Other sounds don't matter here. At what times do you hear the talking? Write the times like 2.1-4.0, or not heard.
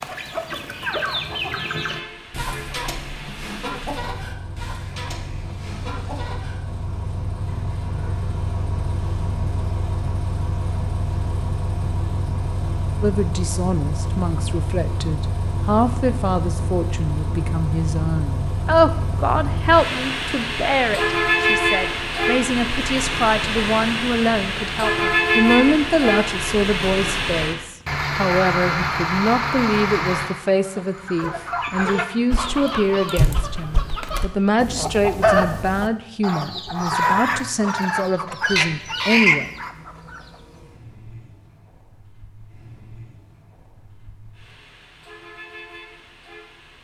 13.0-39.5.